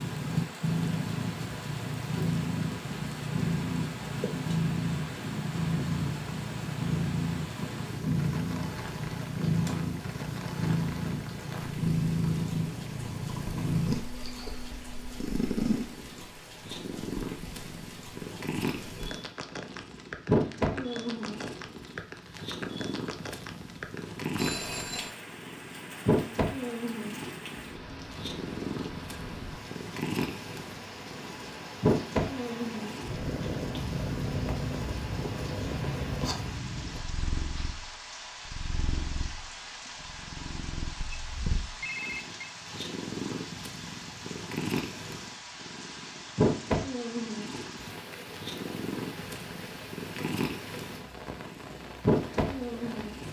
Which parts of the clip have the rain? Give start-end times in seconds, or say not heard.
0.0-53.2.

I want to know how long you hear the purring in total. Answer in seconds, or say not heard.
53 s.